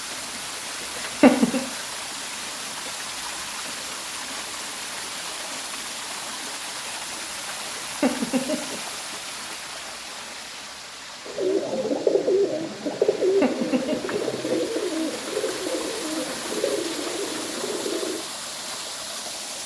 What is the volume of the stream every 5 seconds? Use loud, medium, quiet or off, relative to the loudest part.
loud, loud, medium, loud.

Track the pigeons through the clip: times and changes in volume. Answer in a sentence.
The pigeons can be heard from 11.2 to 18.2 s, getting quieter.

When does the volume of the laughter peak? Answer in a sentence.
The volume of the laughter peaks at 1 second.